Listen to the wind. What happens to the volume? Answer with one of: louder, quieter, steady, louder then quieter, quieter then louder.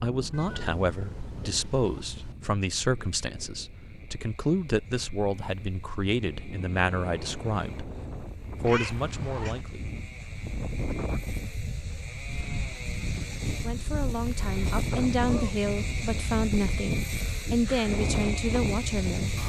louder.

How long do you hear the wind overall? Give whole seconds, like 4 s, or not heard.
19 s.